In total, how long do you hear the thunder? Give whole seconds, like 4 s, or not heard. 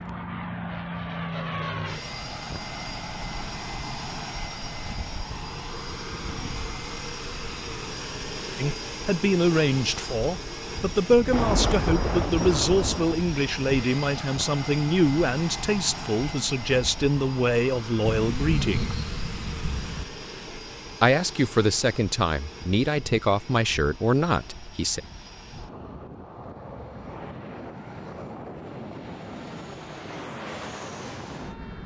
4 s.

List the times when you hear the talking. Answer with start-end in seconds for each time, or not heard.
8.6-19.0, 21.0-25.0.